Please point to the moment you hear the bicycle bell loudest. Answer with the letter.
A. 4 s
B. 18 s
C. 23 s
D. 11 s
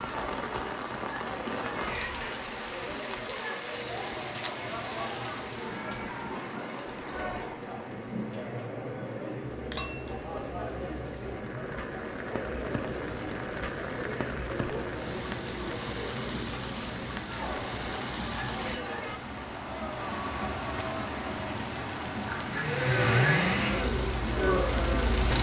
C.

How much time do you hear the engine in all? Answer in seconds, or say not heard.
3 s.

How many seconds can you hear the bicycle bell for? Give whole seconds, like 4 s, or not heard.
2 s.